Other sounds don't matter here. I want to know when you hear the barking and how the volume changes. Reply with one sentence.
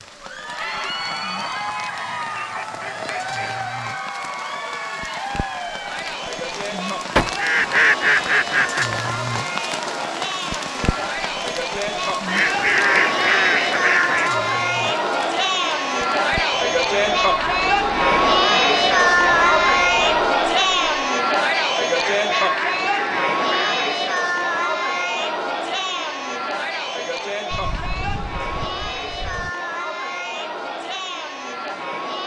You can't hear the barking here.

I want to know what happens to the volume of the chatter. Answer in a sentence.
The volume of the chatter goes up, then down.